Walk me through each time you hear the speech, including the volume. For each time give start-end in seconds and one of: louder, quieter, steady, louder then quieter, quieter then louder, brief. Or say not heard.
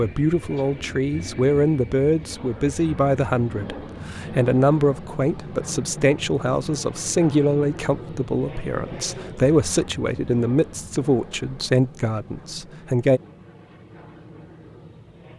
0.0-13.2 steady.